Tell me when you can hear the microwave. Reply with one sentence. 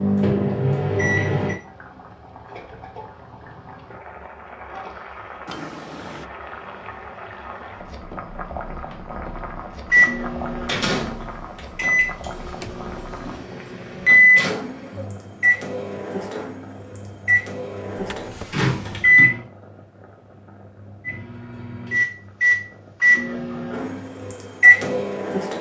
The microwave can be heard from 0.0 to 1.6 s, from 9.9 to 19.4 s and from 21.1 to 25.5 s.